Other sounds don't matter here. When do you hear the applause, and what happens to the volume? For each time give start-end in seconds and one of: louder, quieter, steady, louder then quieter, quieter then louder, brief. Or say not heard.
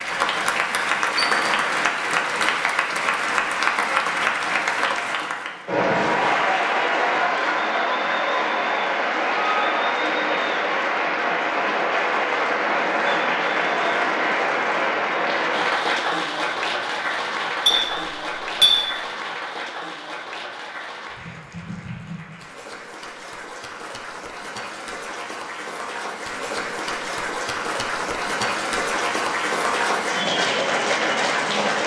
0.0-31.8 quieter then louder.